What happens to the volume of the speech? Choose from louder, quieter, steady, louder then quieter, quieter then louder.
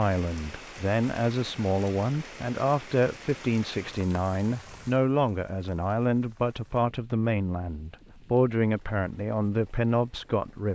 steady.